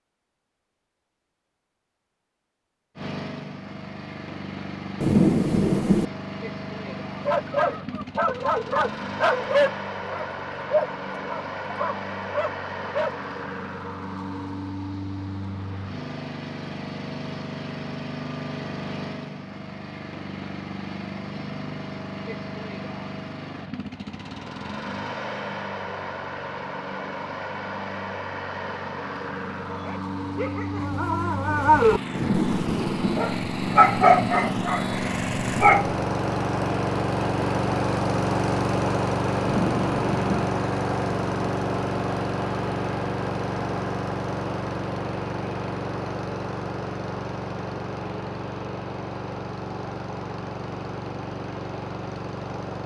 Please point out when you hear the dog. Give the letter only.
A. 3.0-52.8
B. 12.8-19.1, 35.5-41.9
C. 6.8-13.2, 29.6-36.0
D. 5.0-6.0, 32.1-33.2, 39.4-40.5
C.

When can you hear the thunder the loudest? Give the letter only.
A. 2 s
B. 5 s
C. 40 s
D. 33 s
B.